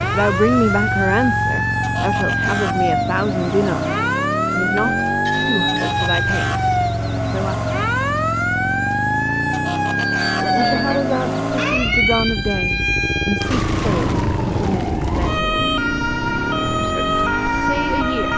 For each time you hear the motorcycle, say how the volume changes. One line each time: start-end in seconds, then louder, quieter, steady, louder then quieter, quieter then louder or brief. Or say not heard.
0.0-18.3 steady.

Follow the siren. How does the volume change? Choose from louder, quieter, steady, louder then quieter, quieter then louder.
steady.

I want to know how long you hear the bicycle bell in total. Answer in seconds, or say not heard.
3 s.